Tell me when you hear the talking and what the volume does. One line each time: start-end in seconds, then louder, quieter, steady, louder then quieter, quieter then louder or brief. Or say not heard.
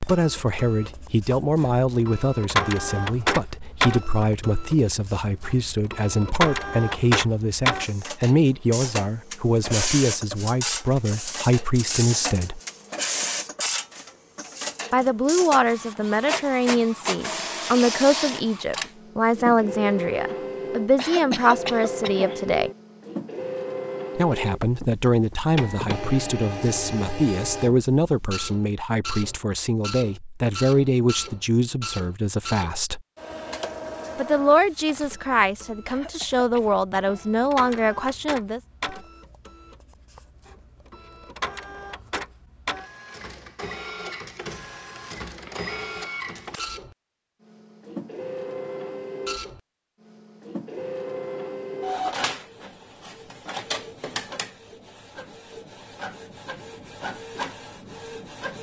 0.1-12.6 steady
14.9-22.7 steady
24.1-33.0 steady
34.1-38.6 steady.